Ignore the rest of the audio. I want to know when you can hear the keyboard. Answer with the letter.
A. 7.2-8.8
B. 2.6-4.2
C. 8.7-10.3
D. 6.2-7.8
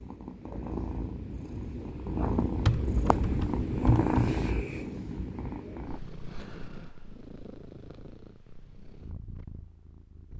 B.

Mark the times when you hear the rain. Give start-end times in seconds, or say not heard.
not heard.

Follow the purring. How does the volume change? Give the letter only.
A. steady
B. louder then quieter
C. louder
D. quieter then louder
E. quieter
B.